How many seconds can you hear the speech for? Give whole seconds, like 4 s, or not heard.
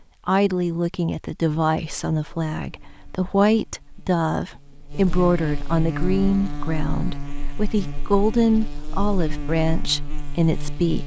11 s.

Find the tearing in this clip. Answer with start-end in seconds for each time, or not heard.
not heard.